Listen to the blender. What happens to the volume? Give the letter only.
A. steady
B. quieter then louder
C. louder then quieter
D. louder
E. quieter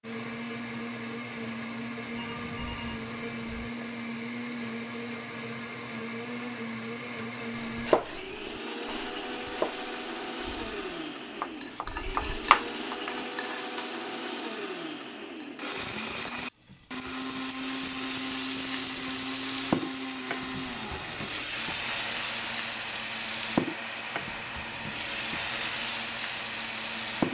A.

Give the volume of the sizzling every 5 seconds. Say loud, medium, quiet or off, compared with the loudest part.
off, off, medium, loud, loud, loud.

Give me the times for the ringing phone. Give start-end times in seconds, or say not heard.
2.1-3.7.